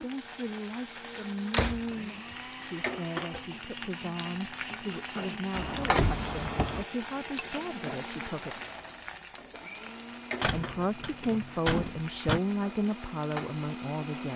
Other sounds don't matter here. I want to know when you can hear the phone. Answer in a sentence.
The phone can't be heard in this clip.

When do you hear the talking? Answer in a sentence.
You can hear the talking from 0.0 to 8.6 s and from 10.5 to 14.3 s.